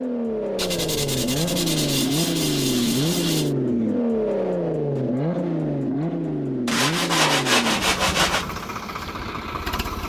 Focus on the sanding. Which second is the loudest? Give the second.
7 s.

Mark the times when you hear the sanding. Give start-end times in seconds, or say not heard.
0.6-3.5, 6.7-8.4.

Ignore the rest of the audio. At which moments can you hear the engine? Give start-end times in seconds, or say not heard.
0.0-10.0.